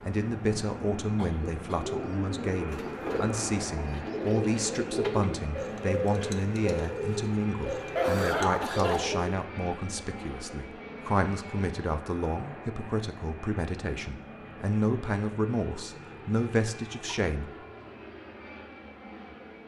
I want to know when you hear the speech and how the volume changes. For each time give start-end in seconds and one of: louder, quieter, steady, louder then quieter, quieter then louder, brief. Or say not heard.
0.0-17.5 steady.